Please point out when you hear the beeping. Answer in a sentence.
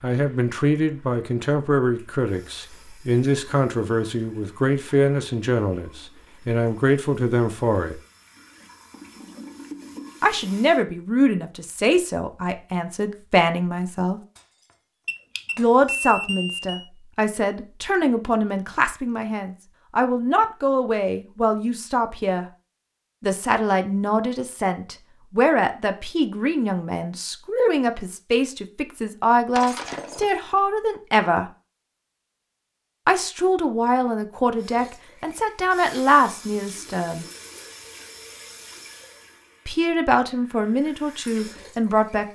The beeping can be heard from 15.1 to 16.9 s.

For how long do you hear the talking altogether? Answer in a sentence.
The talking can be heard for 34 seconds in total.